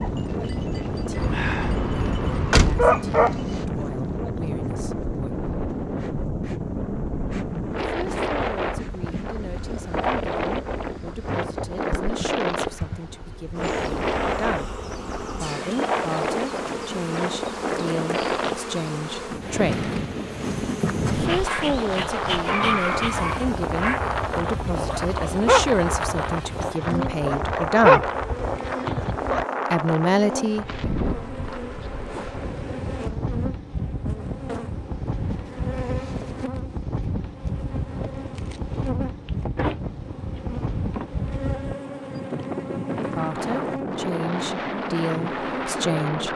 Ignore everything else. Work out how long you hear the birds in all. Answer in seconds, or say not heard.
not heard.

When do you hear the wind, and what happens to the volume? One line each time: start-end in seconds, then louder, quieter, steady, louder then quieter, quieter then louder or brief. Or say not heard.
0.0-46.3 steady.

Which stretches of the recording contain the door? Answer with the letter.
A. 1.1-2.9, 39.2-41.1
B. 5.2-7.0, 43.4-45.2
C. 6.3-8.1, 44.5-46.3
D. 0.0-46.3
A.